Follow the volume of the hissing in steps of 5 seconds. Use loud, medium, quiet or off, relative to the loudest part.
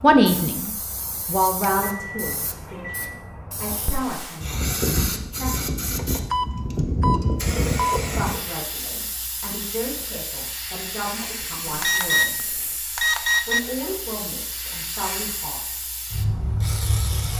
medium, loud, medium, loud.